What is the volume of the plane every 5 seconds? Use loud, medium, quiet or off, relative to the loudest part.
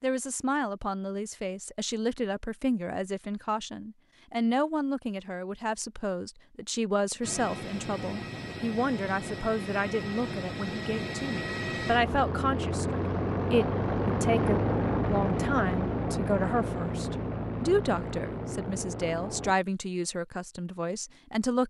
off, medium, loud, loud, off.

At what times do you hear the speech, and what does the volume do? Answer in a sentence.
The speech can be heard from 0.0 to 21.6 s, at a steady volume.